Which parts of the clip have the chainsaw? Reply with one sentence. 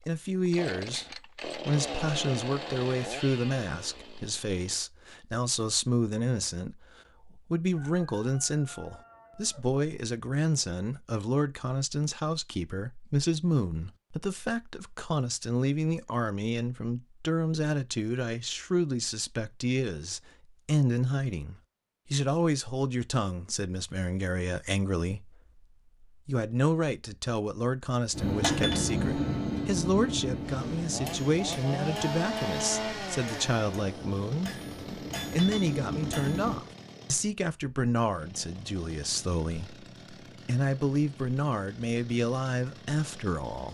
The chainsaw can be heard from 0.5 to 4.8 s and from 30.4 to 43.6 s.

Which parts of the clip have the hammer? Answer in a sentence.
The hammer can be heard from 28.1 to 36.6 s.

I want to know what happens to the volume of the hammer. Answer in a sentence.
The volume of the hammer goes down, then up.